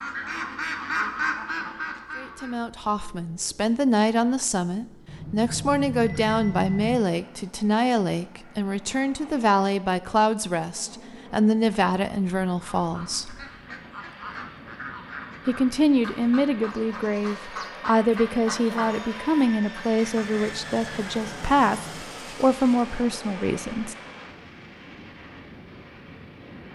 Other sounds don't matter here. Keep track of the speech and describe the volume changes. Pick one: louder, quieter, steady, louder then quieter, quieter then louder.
steady.